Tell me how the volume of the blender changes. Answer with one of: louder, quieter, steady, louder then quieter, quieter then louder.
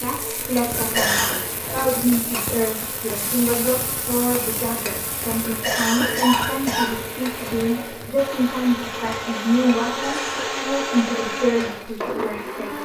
louder.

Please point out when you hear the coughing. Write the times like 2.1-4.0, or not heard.
0.8-1.4, 5.4-7.0, 9.8-10.6.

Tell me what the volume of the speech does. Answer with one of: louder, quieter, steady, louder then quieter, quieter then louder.
steady.